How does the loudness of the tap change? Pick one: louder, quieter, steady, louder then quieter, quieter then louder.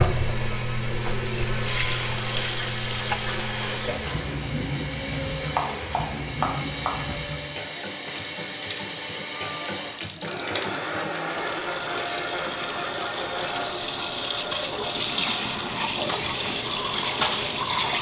quieter then louder.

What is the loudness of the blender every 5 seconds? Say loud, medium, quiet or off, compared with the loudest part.
loud, loud, loud, medium.